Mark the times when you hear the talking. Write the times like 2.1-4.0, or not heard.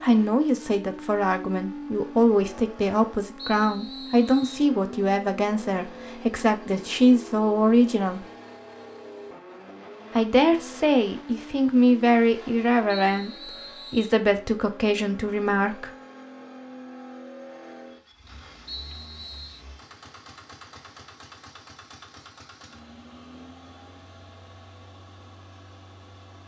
0.0-8.2, 10.2-15.9.